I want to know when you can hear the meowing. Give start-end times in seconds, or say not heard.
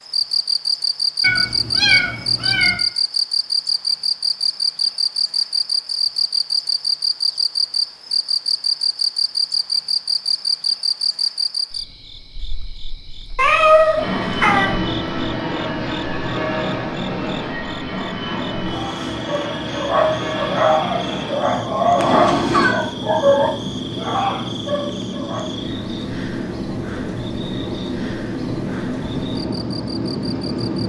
1.2-2.8, 13.3-14.8, 21.9-22.8.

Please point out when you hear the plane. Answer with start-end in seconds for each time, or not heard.
13.9-30.8.